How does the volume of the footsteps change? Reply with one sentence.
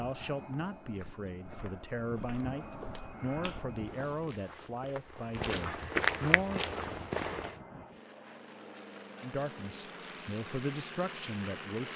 The volume of the footsteps goes up.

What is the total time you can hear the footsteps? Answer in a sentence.
The footsteps can be heard for 7 seconds in total.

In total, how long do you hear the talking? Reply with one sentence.
You can hear the talking for 9 seconds altogether.